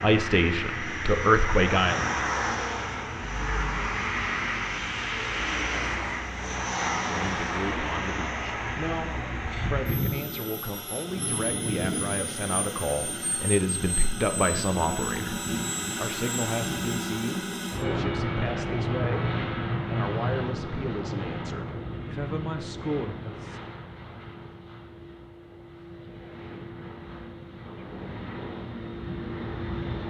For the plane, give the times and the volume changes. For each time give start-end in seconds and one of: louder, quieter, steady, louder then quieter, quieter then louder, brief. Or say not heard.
0.0-30.0 quieter.